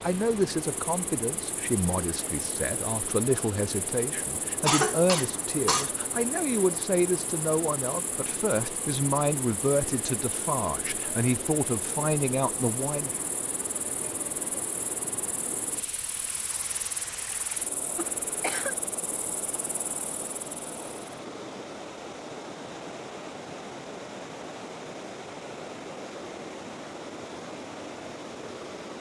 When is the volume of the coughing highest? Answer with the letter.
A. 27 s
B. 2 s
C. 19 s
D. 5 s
D.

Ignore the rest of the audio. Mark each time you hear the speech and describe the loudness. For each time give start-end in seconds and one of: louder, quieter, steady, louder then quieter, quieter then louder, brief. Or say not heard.
0.0-13.2 steady.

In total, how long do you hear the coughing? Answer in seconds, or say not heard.
2 s.